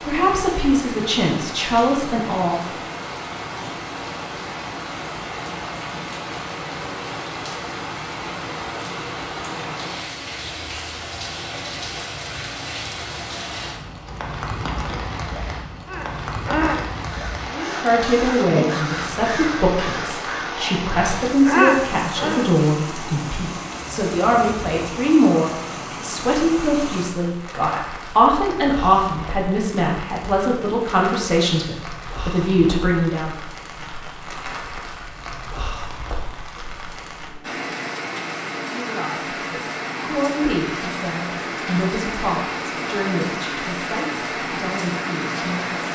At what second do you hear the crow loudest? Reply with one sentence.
The loudest moment of the crow is at 22 seconds.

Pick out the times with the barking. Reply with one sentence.
The barking can't be heard in this clip.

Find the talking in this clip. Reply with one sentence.
The talking can be heard from 0.0 to 2.6 s, from 17.5 to 33.3 s and from 38.6 to 45.9 s.